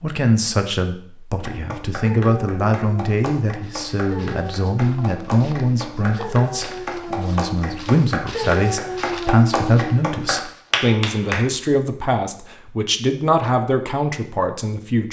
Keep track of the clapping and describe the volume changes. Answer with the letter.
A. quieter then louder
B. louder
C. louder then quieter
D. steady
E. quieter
B.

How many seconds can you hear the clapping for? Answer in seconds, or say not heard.
10 s.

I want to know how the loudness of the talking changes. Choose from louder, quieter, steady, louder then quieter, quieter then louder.
steady.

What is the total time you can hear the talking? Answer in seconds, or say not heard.
15 s.